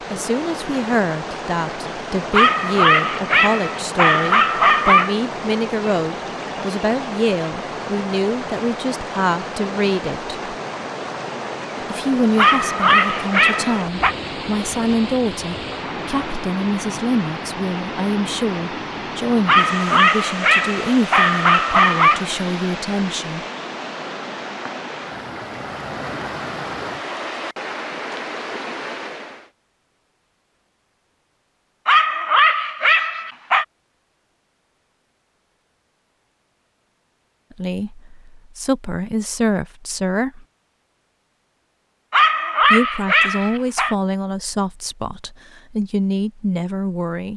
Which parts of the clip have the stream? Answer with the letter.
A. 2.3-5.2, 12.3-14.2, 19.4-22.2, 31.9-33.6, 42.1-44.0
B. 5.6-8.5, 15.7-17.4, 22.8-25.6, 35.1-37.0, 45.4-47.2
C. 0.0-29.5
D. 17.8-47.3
C.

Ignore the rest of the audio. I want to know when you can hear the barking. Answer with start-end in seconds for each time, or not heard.
2.3-5.2, 12.3-14.2, 19.4-22.2, 31.9-33.6, 42.1-44.0.